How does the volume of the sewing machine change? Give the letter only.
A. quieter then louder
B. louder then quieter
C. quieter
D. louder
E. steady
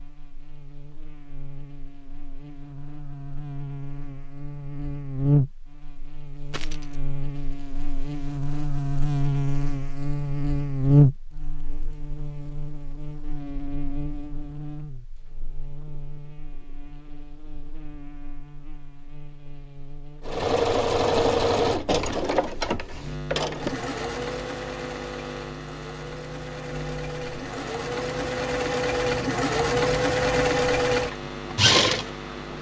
A.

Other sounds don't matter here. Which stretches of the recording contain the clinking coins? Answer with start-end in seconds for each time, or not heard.
6.5-7.0.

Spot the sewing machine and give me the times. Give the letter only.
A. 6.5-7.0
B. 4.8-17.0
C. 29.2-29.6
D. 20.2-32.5
D.